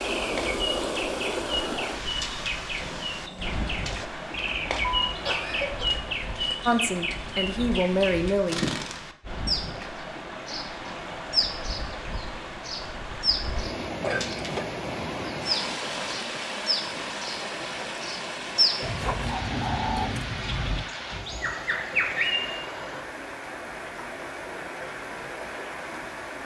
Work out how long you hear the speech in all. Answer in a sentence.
You can hear the speech for 2 seconds altogether.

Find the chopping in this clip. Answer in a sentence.
You can't hear the chopping here.